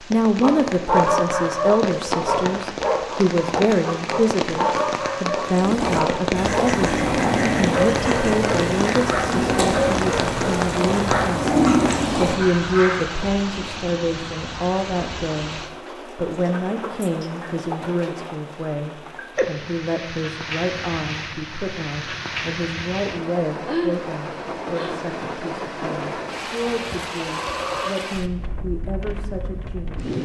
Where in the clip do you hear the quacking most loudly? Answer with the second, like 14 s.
12 s.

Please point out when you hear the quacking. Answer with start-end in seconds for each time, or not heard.
5.5-13.2.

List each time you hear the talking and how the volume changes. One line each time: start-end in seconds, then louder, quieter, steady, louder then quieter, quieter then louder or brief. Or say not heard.
0.1-30.1 quieter.